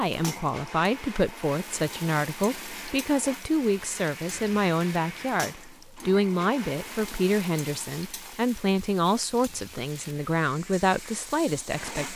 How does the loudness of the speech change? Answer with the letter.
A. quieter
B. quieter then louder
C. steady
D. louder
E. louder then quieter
C.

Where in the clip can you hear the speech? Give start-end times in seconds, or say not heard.
0.0-12.1.